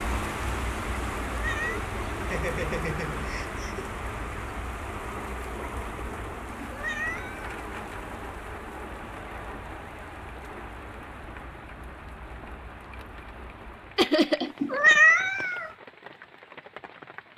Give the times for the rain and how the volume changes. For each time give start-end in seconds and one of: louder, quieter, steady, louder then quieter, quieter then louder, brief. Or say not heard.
0.0-17.3 quieter.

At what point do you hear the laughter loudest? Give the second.
14 s.